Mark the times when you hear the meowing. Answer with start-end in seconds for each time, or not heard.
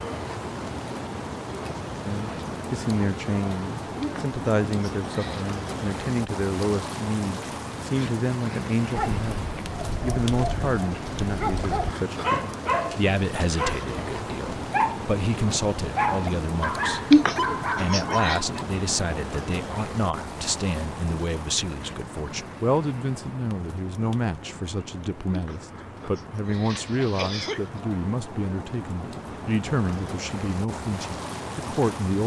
not heard.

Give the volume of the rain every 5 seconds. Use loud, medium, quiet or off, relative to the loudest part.
loud, loud, loud, loud, medium, medium, loud.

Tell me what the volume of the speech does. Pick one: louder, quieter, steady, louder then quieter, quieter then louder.
steady.